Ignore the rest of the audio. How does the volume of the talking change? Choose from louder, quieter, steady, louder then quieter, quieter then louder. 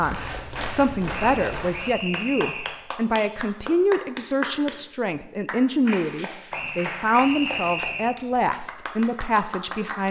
steady.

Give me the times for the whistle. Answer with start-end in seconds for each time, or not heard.
1.1-2.8, 6.5-8.2.